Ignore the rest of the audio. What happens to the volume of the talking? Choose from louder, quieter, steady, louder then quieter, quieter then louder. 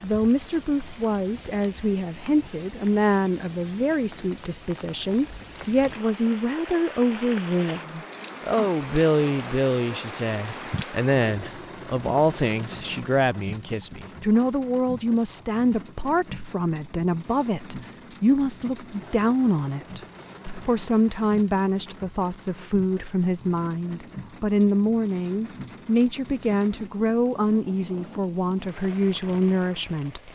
steady.